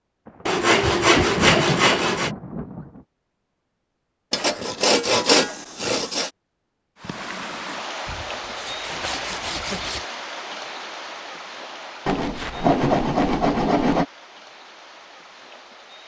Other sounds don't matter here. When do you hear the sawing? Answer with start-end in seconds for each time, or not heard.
0.5-2.3, 4.3-6.3, 8.1-10.1, 12.1-14.1.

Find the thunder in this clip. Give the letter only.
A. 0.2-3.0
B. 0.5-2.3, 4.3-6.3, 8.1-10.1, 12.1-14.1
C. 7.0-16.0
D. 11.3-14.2
A.